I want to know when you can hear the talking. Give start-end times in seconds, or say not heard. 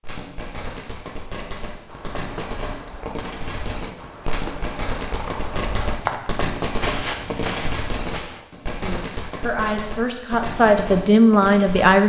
8.8-12.0.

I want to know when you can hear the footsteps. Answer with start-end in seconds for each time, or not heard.
1.9-8.4.